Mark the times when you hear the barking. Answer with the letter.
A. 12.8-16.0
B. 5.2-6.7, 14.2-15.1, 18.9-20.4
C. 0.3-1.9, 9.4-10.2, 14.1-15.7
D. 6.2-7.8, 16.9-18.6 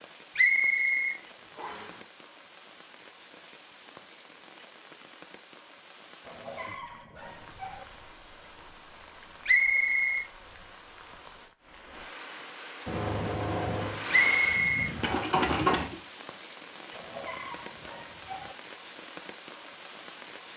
D.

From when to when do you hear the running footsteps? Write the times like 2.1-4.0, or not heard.
not heard.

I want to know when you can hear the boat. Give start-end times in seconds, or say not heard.
12.8-16.0.